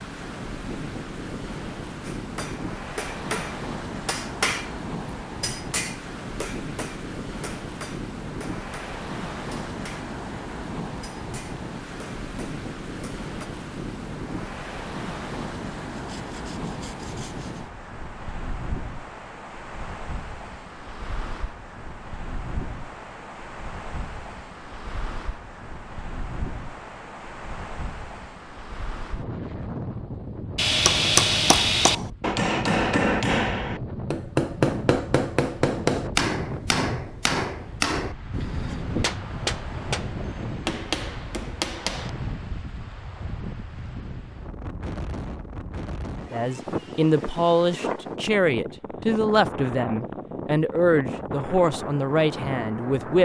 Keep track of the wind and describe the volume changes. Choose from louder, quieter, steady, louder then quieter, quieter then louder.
steady.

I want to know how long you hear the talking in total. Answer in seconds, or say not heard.
7 s.